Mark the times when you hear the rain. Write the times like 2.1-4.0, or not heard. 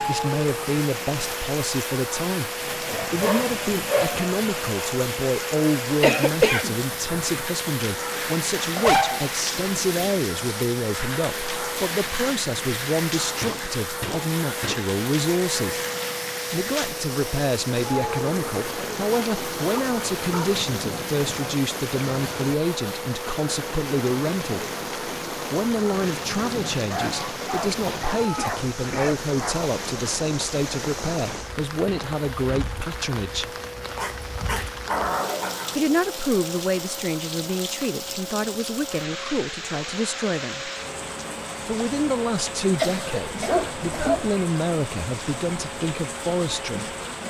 0.0-47.2.